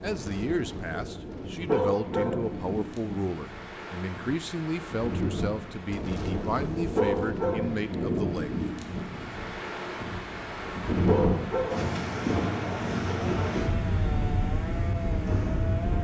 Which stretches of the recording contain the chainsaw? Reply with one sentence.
The chainsaw can be heard from 11.7 to 15.9 s.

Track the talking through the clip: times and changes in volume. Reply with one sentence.
The talking can be heard from 0.0 to 8.6 s, at a steady volume.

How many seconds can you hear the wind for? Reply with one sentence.
The wind can be heard for 16 seconds in total.